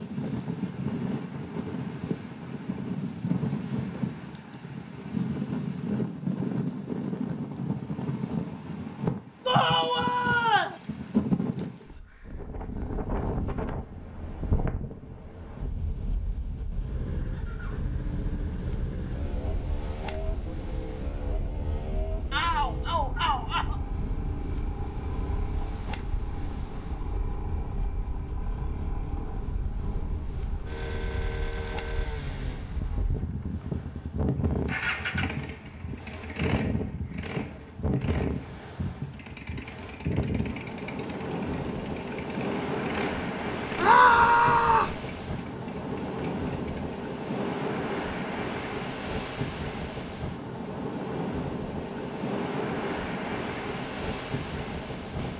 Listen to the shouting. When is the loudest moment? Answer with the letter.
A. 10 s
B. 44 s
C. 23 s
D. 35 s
B.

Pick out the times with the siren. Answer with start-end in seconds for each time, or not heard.
not heard.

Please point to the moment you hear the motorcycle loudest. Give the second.
35 s.